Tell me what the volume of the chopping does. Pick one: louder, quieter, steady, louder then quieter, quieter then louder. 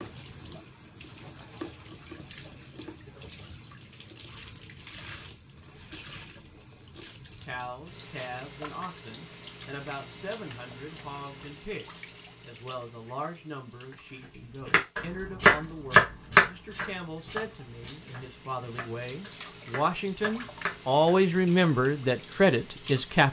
quieter then louder.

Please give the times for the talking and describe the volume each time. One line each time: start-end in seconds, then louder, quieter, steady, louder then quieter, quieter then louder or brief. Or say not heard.
7.5-23.2 louder.